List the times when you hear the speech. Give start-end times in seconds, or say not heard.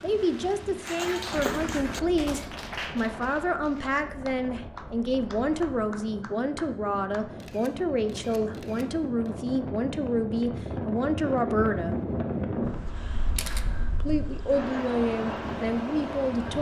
0.0-11.9, 14.0-16.5.